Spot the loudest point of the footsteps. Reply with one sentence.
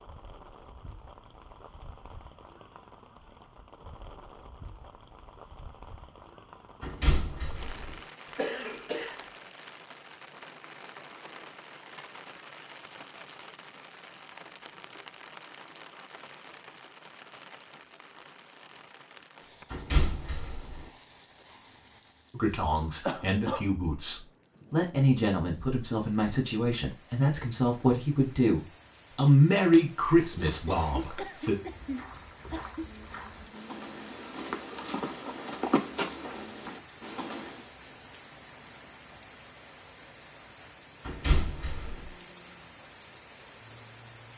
The loudest moment of the footsteps is at 36 seconds.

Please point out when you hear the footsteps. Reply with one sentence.
You can hear the footsteps from 29.6 to 37.6 s.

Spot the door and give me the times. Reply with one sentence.
You can hear the door from 6.8 to 8.0 s, from 19.7 to 20.8 s and from 41.0 to 42.1 s.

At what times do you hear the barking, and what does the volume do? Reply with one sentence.
You can't hear the barking here.